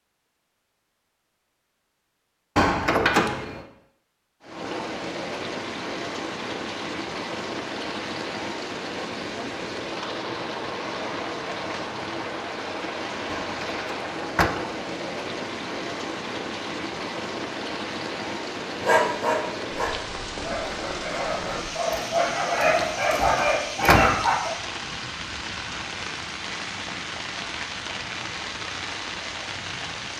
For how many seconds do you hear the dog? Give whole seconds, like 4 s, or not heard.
6 s.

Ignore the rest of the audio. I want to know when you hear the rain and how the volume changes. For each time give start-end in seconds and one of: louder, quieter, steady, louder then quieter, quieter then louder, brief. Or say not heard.
4.4-30.1 steady.